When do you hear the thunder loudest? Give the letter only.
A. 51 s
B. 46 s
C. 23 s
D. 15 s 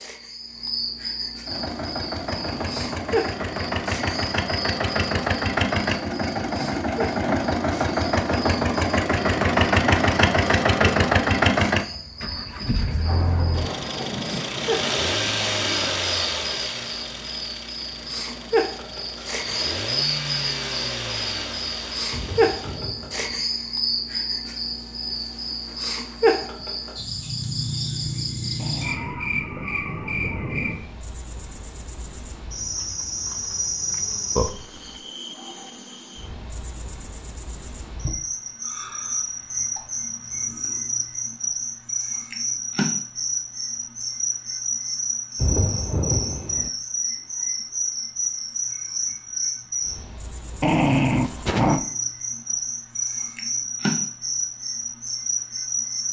B.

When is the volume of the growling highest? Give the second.
51 s.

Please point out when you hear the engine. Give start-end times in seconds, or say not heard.
1.4-22.9.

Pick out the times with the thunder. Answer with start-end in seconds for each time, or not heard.
13.0-16.0, 22.1-23.4, 45.4-46.7.